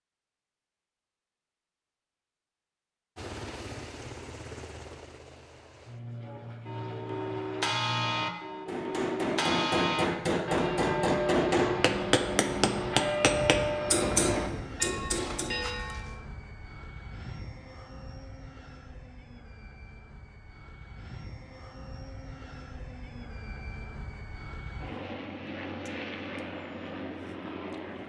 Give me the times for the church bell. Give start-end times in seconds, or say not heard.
6.2-16.1.